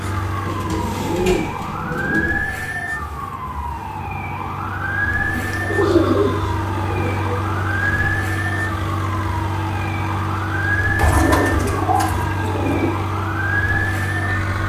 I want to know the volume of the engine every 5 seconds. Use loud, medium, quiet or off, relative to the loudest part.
medium, loud, loud.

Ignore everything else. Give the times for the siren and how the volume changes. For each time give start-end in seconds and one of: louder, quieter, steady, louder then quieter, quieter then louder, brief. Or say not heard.
0.0-14.6 steady.